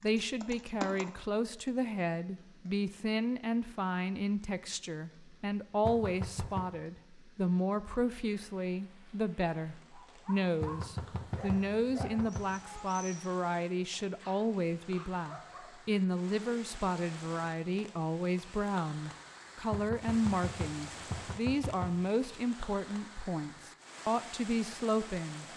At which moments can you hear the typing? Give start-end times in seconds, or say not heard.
0.0-1.7.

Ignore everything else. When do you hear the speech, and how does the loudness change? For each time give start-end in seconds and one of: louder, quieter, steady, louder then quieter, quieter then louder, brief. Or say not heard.
0.0-25.4 steady.